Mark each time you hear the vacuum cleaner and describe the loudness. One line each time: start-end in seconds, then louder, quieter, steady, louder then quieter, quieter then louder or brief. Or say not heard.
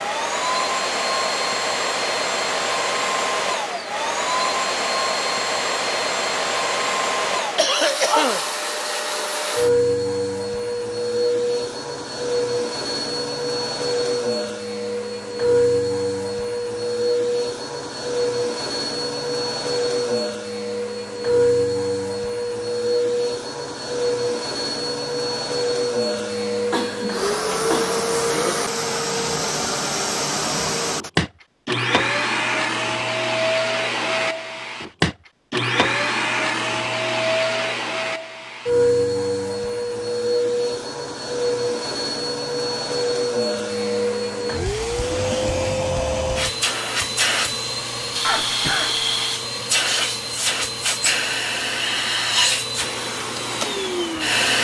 0.0-54.5 steady.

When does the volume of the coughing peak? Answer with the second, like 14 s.
8 s.